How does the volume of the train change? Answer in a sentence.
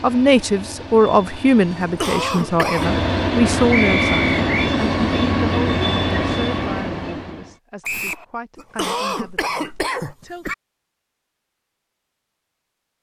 The volume of the train goes up.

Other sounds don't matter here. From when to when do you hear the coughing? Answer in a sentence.
You can hear the coughing from 1.8 to 3.0 s and from 8.6 to 10.6 s.